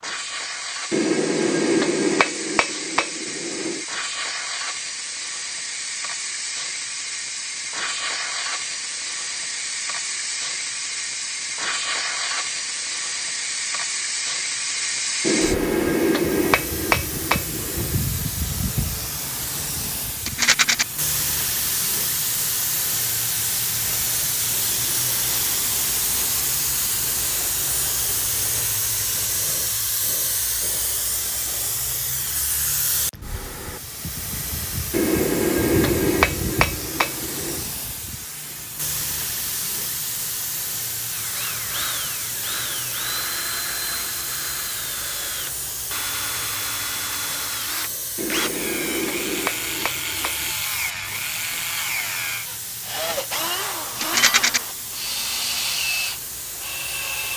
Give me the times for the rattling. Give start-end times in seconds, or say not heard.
20.2-20.9, 54.0-54.6.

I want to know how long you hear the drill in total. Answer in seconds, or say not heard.
16 s.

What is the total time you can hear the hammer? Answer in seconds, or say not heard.
11 s.